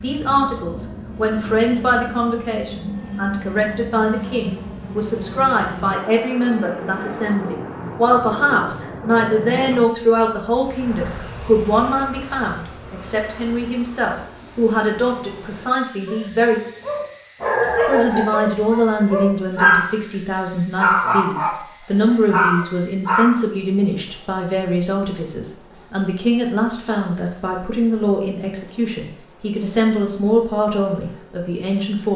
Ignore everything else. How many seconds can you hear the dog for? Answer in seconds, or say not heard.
6 s.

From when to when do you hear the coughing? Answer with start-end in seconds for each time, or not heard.
not heard.